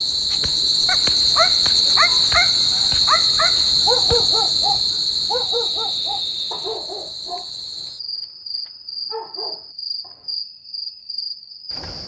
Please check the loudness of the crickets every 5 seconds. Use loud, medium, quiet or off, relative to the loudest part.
loud, medium, quiet.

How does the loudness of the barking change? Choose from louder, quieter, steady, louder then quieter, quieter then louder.
quieter.